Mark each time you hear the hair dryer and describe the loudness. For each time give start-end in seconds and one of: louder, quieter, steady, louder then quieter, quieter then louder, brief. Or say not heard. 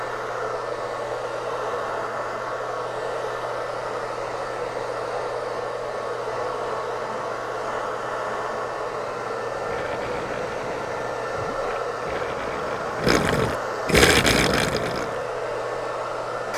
0.0-16.5 steady.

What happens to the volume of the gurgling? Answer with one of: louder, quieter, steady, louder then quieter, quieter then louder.
louder.